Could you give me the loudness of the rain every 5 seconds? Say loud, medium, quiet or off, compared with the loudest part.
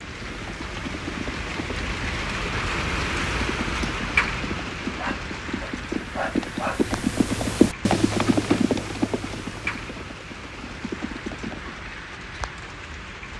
loud, medium, medium.